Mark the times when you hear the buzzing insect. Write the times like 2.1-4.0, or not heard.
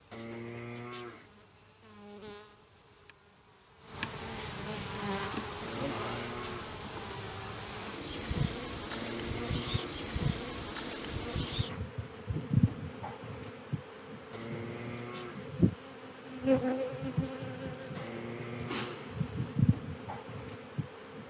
0.0-21.2.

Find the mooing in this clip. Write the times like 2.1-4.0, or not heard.
0.1-1.3, 5.6-6.8, 8.9-10.1, 14.3-15.5, 17.9-19.1.